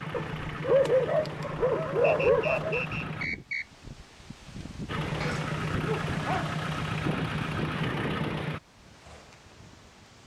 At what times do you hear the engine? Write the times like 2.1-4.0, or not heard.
0.0-3.3, 4.8-8.6.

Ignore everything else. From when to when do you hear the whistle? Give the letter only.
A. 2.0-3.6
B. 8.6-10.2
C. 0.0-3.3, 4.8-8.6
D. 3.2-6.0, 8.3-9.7
A.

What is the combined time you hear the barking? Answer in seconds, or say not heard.
4 s.